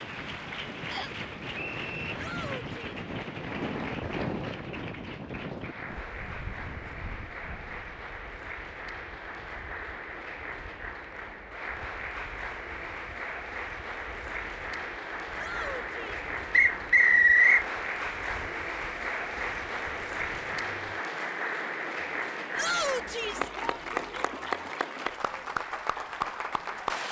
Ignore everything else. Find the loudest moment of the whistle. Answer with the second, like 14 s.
17 s.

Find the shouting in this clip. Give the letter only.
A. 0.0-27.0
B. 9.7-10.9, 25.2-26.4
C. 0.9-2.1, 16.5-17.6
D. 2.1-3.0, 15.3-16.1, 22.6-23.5
D.